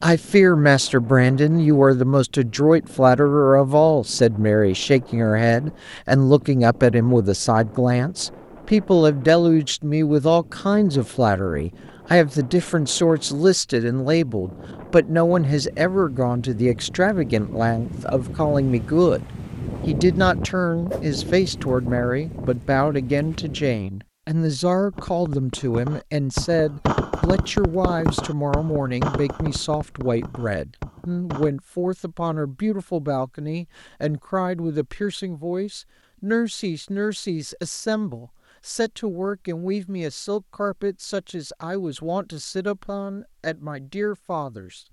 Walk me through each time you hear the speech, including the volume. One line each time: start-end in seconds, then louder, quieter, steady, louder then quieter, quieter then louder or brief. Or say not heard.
0.0-44.8 quieter.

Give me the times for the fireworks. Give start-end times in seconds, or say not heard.
24.9-31.5.